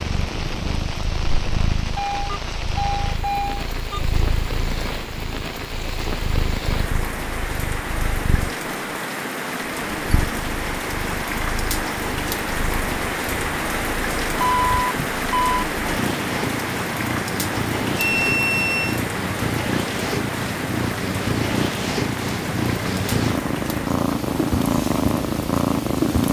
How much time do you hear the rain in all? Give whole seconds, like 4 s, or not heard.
26 s.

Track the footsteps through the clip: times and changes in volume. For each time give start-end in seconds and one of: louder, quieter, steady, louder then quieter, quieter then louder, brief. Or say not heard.
not heard.